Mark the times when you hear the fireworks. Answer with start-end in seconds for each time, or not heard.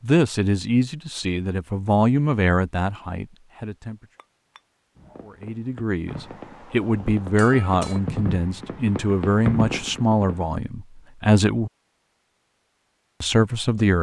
5.0-10.6.